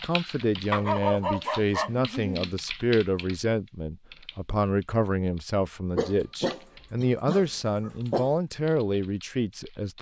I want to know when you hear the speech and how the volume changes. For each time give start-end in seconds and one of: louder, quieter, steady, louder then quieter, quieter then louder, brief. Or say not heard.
0.0-9.9 steady.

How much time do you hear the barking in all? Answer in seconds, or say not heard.
4 s.